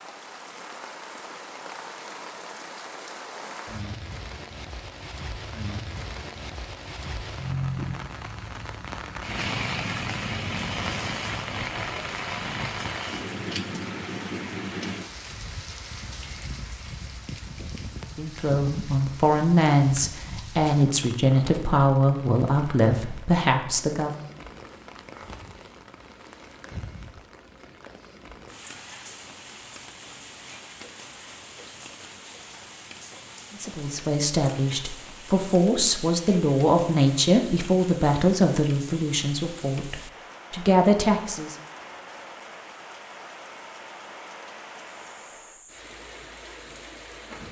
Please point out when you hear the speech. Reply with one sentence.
You can hear the speech from 18.1 to 24.2 s and from 33.5 to 41.5 s.